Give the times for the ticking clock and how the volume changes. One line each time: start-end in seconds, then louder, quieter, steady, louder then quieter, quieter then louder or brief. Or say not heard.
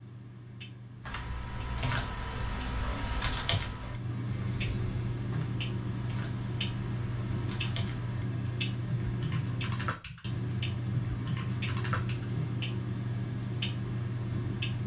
0.0-14.8 louder.